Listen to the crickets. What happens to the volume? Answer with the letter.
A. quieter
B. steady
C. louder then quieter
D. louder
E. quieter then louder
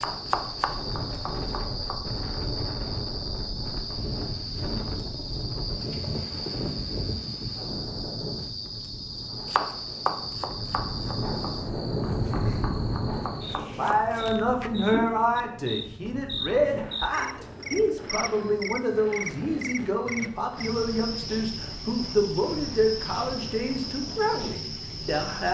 B.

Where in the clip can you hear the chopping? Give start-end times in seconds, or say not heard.
0.0-2.2, 9.4-14.2.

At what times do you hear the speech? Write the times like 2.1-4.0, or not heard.
13.8-25.5.